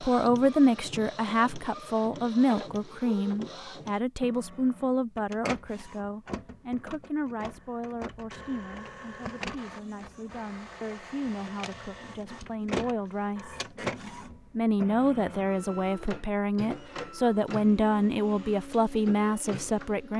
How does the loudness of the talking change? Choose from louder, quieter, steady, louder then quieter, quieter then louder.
quieter then louder.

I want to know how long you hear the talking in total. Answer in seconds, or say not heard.
19 s.